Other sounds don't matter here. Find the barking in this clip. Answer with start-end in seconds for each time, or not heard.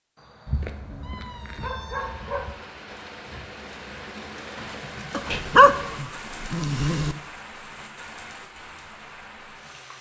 0.5-2.5, 5.1-7.2.